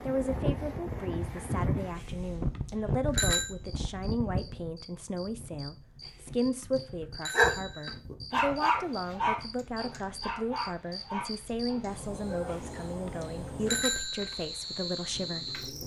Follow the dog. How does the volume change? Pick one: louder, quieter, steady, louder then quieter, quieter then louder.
quieter.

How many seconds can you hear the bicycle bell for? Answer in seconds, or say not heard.
5 s.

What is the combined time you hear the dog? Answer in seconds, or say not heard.
6 s.